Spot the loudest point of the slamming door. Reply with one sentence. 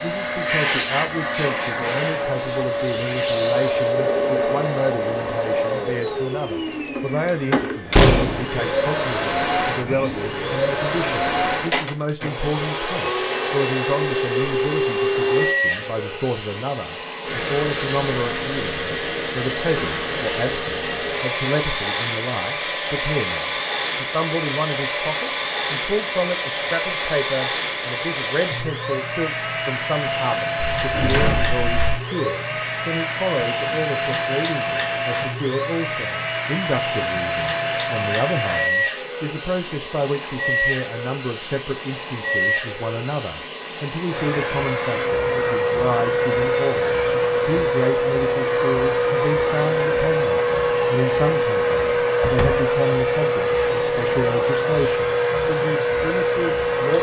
The volume of the slamming door peaks at 8 seconds.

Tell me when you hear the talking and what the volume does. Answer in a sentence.
You can hear the talking from 0.0 to 56.9 s, at a steady volume.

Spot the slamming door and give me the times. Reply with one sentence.
You can hear the slamming door from 7.9 to 8.4 s, from 30.6 to 31.7 s and from 52.2 to 52.6 s.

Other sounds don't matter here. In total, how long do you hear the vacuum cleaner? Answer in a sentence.
The vacuum cleaner can be heard for 57 seconds in total.